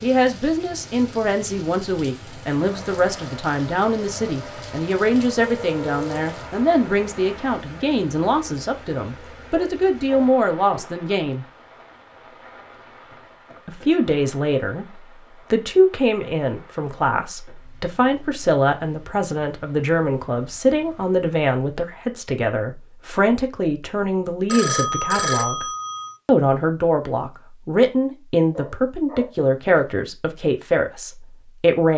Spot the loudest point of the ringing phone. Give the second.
25 s.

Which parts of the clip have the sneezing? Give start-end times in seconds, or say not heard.
not heard.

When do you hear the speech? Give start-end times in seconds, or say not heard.
0.0-11.4, 13.7-25.6, 26.2-31.9.